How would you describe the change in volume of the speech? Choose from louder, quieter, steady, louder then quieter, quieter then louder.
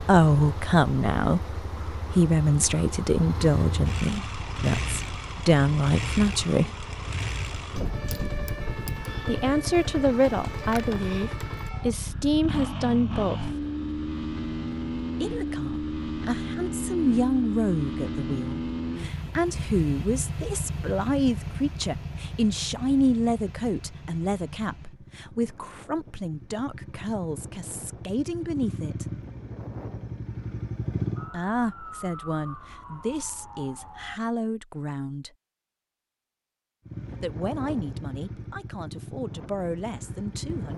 quieter.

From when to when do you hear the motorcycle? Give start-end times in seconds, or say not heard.
0.0-31.3, 36.9-40.7.